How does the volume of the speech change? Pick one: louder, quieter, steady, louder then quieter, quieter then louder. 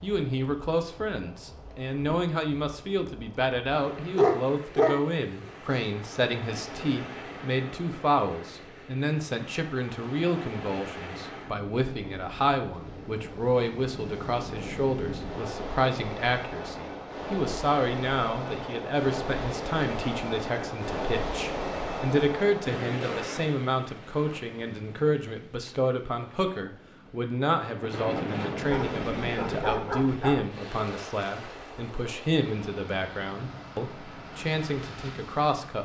steady.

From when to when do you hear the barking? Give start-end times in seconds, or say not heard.
4.2-5.7, 28.6-30.4.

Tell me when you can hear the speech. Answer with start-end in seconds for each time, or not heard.
0.0-35.8.